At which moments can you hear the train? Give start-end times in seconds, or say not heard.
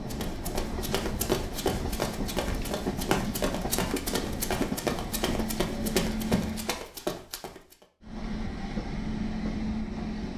0.0-6.8, 8.0-10.3.